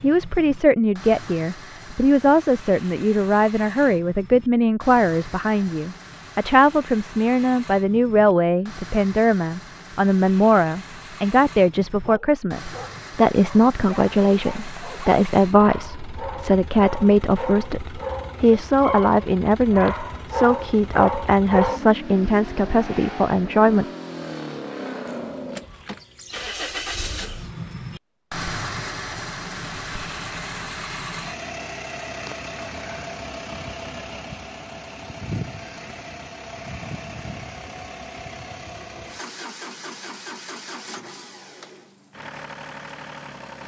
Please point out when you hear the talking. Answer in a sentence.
You can hear the talking from 0.0 to 23.9 s.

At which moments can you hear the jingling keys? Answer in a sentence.
You can hear the jingling keys from 25.1 to 26.1 s.